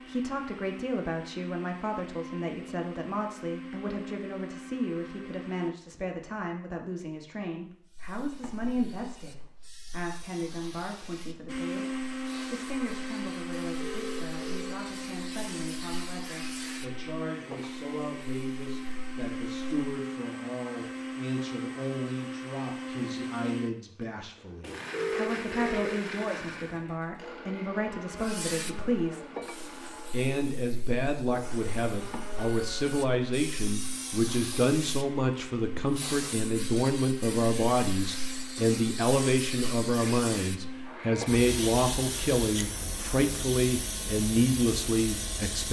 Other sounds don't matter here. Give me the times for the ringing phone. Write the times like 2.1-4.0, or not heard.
13.8-14.8, 24.9-25.9.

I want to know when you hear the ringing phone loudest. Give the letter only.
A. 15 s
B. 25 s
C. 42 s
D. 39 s
B.